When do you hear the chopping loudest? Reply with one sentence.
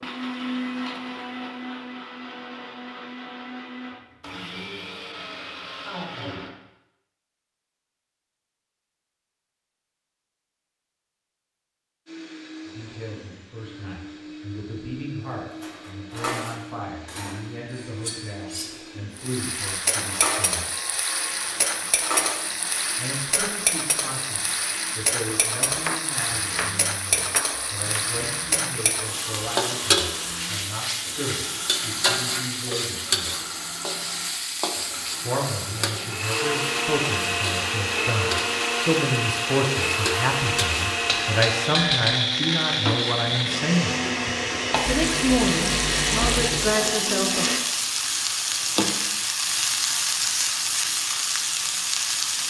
The loudest moment of the chopping is at 26 seconds.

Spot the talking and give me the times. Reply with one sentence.
You can hear the talking from 12.7 to 20.7 s, from 22.9 to 33.4 s, from 35.2 to 44.0 s and from 44.9 to 47.5 s.